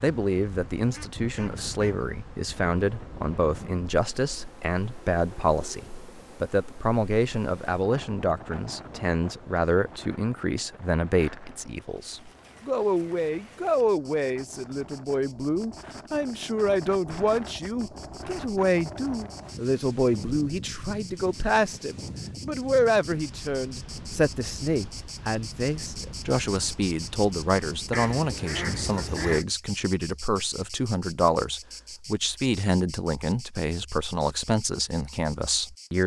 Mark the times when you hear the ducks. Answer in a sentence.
You can hear the ducks from 0.8 to 2.0 s and from 27.9 to 29.4 s.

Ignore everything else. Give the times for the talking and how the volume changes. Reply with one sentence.
The talking can be heard from 0.0 to 36.0 s, at a steady volume.